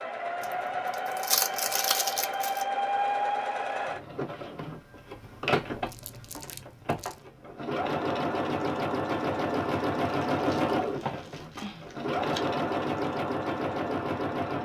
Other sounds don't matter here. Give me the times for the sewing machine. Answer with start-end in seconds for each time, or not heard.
0.0-14.5.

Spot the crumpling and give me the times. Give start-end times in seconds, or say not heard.
0.4-2.6, 5.9-7.2, 10.3-12.4.